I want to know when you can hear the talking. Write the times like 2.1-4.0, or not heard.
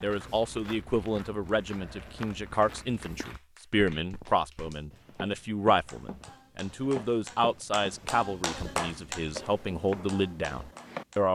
0.0-11.3.